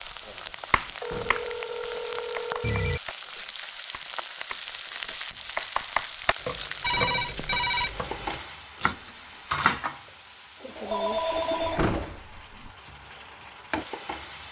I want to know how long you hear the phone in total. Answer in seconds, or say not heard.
5 s.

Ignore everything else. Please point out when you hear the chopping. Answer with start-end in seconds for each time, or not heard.
0.2-9.8.